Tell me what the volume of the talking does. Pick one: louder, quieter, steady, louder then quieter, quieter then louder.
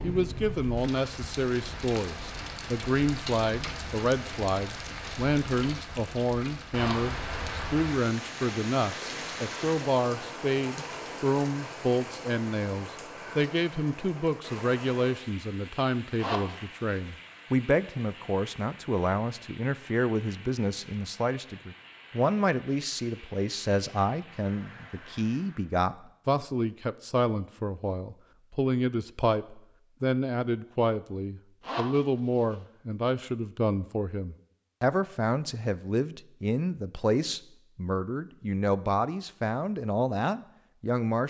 steady.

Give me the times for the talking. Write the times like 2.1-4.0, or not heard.
0.0-41.2.